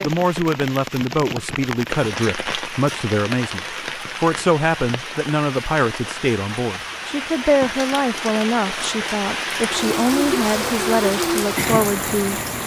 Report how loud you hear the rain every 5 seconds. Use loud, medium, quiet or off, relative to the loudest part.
medium, medium, loud.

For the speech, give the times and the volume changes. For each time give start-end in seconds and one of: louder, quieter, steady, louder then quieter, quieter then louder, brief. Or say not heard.
0.0-12.4 steady.